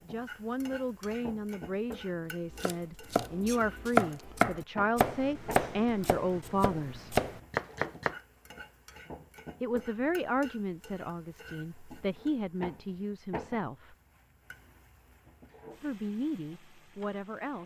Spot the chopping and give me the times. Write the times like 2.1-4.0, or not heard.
2.5-8.2.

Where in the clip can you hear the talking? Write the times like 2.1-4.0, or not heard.
0.1-7.2, 9.6-13.9, 15.8-17.6.